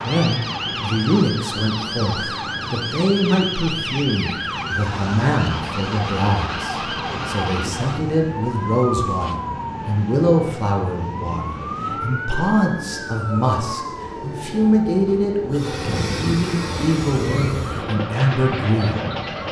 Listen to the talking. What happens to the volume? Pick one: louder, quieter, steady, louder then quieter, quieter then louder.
steady.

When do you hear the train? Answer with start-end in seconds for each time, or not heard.
0.0-19.4.